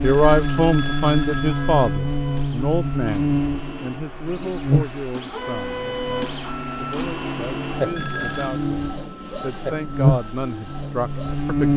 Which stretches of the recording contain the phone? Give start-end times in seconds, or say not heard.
0.0-2.0, 8.0-8.6.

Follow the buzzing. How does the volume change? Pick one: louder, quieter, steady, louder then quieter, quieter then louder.
quieter then louder.